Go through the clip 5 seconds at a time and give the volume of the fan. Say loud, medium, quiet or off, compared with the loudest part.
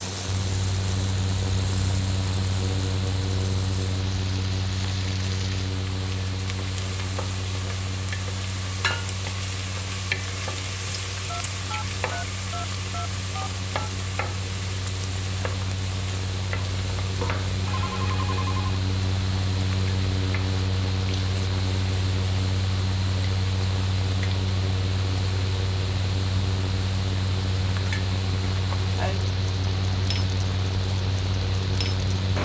loud, medium, medium, loud, loud, loud, loud.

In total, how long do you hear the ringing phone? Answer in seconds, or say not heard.
4 s.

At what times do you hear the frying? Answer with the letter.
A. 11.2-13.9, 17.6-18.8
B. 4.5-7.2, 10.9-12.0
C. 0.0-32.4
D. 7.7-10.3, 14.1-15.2
C.